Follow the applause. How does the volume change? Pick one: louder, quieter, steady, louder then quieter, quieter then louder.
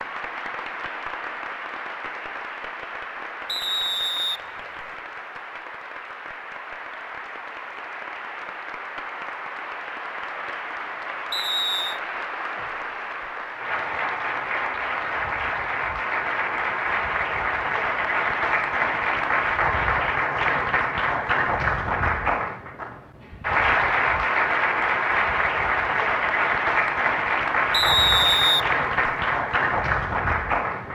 louder.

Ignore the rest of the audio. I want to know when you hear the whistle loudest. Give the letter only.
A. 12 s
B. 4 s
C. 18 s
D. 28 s
D.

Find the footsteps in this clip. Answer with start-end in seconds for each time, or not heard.
not heard.